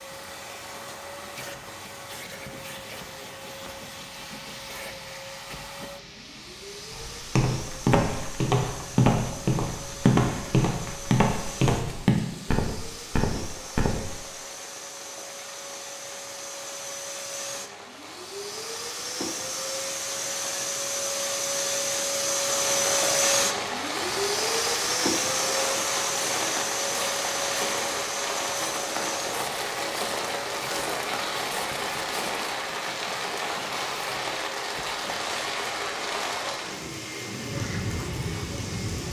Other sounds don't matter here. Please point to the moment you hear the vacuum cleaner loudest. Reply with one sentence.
The volume of the vacuum cleaner peaks at 23 seconds.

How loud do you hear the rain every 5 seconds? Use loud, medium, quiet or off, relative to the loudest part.
quiet, quiet, quiet, quiet, loud, loud, loud, loud.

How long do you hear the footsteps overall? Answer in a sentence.
You can hear the footsteps for 14 seconds altogether.